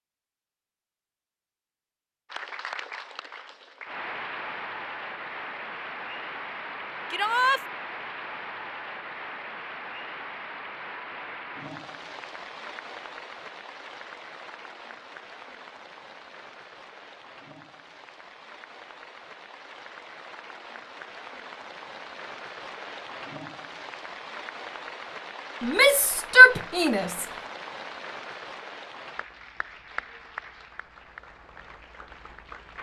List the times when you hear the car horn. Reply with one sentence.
You can't hear the car horn here.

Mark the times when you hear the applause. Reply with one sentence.
The applause can be heard from 2.3 to 32.7 s.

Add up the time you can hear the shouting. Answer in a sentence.
You can hear the shouting for 2 seconds altogether.